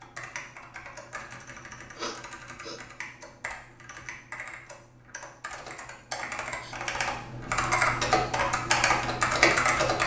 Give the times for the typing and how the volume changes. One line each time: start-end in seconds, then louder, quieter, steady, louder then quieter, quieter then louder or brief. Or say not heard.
0.0-10.0 louder.